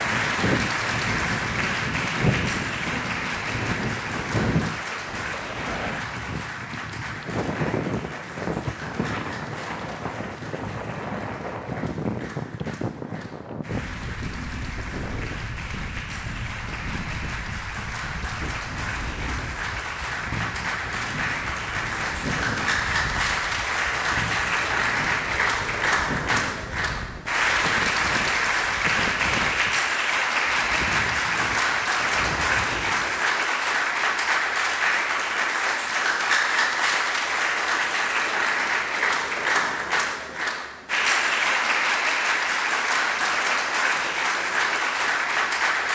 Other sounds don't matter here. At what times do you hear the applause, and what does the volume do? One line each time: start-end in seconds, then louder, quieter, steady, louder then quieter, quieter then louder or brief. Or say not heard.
0.0-45.9 quieter then louder.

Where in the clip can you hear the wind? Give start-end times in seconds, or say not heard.
0.0-33.2.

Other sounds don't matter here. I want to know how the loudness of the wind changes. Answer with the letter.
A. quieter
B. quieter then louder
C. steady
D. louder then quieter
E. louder
A.